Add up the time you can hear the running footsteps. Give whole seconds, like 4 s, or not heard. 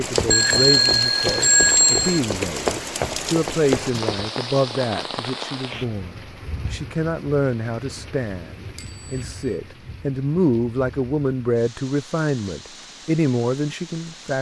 4 s.